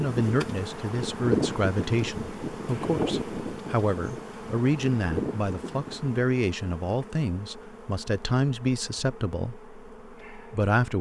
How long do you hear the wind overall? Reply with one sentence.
The wind can be heard for 6 seconds in total.